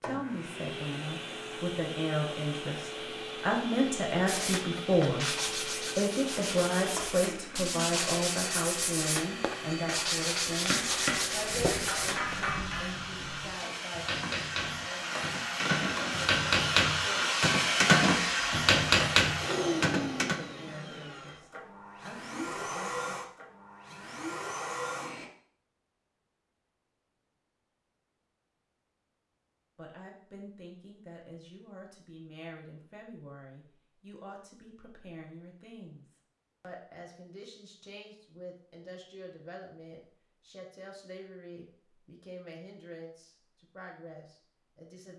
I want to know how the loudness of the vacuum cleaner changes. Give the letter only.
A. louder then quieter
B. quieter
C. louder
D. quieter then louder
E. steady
A.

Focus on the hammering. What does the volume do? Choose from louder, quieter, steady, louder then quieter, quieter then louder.
louder.